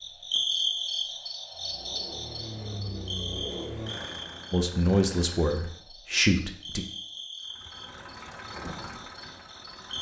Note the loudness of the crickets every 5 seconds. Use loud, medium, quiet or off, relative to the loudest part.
loud, medium.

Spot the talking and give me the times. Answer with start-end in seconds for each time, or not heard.
4.5-6.8.